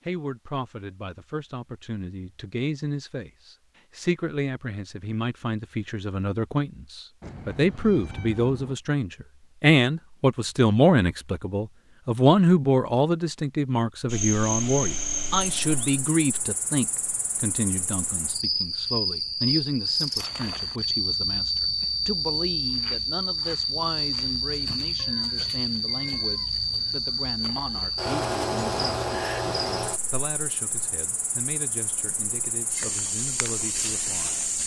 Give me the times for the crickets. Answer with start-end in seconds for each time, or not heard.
14.1-34.6.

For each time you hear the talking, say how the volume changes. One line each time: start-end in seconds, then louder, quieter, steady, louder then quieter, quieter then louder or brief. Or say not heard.
0.1-34.4 louder then quieter.